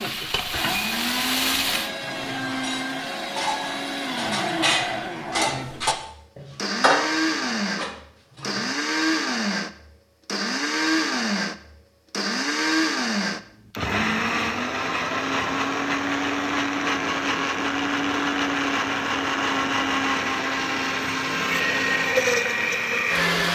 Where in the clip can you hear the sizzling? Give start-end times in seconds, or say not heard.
0.0-1.9.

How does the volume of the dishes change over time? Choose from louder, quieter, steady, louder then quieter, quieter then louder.
louder then quieter.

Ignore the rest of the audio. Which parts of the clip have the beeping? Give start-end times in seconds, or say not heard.
not heard.